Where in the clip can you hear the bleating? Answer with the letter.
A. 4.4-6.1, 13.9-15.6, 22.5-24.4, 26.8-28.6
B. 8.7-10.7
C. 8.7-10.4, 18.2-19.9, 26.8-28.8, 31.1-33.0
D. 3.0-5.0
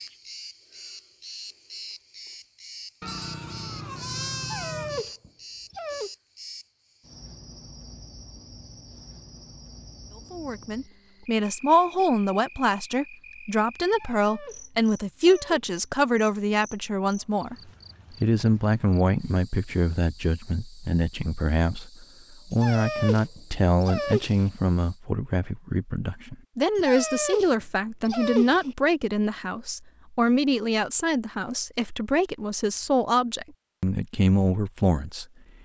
D.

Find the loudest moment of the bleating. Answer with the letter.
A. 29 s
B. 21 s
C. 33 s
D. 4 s
D.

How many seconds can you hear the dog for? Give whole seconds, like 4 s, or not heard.
7 s.